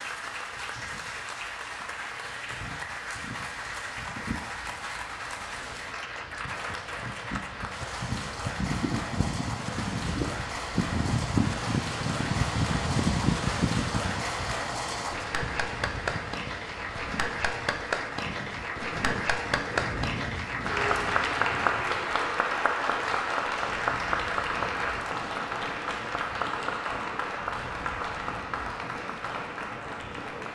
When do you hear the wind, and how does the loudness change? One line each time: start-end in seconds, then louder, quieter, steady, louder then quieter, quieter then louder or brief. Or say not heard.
0.0-30.5 louder then quieter.